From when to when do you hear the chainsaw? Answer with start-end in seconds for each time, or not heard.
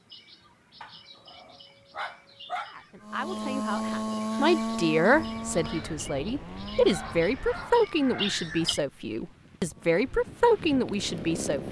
3.0-7.2, 9.8-11.6.